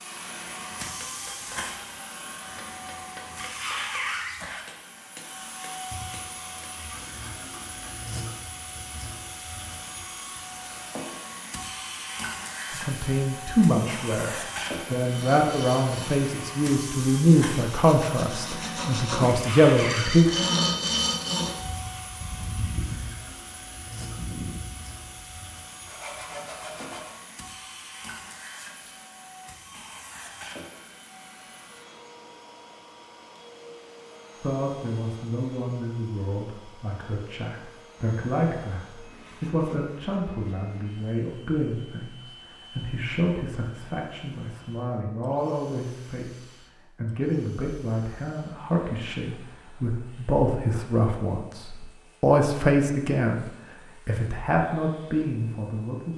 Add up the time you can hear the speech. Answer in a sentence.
The speech can be heard for 29 seconds in total.